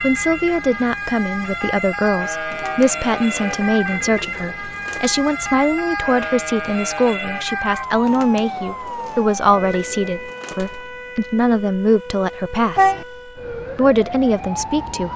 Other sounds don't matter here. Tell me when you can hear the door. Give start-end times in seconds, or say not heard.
not heard.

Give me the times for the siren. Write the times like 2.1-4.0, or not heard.
0.0-15.1.